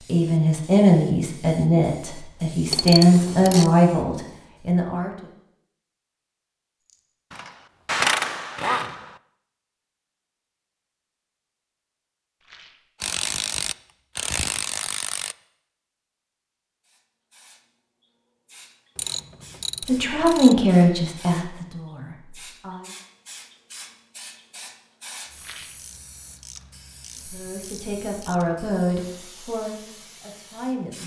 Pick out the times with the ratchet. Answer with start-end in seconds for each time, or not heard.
2.7-3.7, 7.3-9.2, 13.0-15.3, 18.9-20.6, 25.8-28.4.